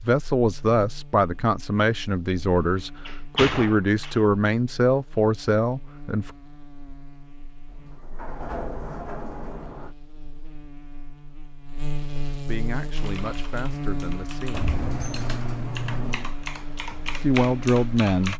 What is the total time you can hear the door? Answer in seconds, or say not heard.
6 s.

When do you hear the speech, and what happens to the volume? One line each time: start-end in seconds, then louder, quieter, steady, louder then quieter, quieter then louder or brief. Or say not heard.
0.0-6.3 steady
12.3-14.7 brief
17.2-18.3 brief.